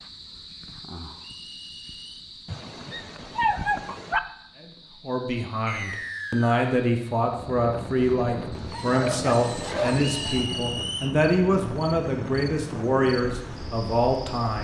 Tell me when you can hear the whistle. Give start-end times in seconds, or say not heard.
1.2-2.2, 5.7-6.7, 10.2-11.2.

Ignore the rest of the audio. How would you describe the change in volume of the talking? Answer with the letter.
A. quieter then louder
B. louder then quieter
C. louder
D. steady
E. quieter
D.